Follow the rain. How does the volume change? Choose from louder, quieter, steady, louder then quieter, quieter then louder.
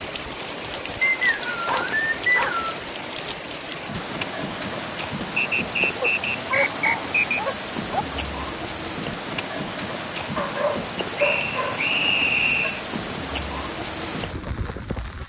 steady.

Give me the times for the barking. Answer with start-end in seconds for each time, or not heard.
1.6-2.6, 6.0-8.1, 10.3-11.8.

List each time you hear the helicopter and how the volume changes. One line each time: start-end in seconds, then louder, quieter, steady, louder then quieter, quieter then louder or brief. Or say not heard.
not heard.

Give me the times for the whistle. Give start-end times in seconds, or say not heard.
1.0-2.8, 5.3-7.4, 11.2-12.8.